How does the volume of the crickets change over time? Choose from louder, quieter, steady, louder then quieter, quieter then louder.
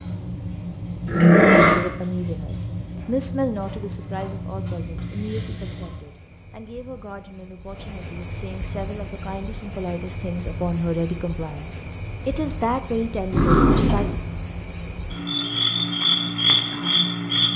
louder.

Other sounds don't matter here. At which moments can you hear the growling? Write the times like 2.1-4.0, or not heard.
1.1-1.8, 13.3-14.2.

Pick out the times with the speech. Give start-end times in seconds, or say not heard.
1.7-14.1.